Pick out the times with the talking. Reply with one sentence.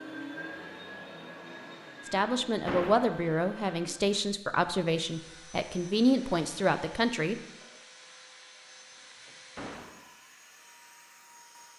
The talking can be heard from 2.0 to 7.4 s.